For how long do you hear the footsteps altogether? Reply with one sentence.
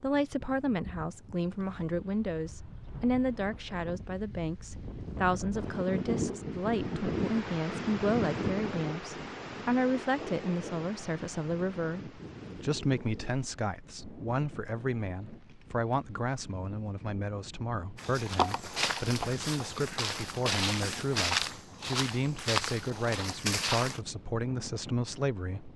You can hear the footsteps for 6 seconds altogether.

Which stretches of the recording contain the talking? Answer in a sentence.
The talking can be heard from 0.0 to 25.7 s.